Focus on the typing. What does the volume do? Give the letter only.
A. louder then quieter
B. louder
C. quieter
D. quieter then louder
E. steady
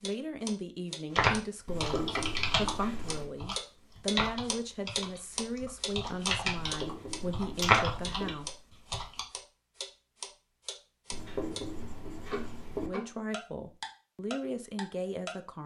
D.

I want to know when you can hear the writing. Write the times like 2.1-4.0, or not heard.
1.6-3.3, 6.5-8.3, 11.1-12.9.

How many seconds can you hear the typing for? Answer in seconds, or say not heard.
8 s.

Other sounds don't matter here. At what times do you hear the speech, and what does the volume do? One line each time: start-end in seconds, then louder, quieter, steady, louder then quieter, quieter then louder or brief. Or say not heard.
0.0-8.5 steady
12.8-15.6 brief.